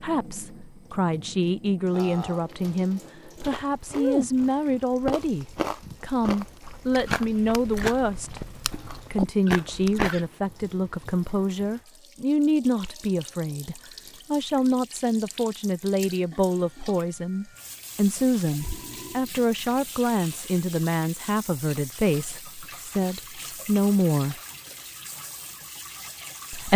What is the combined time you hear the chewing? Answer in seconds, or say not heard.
7 s.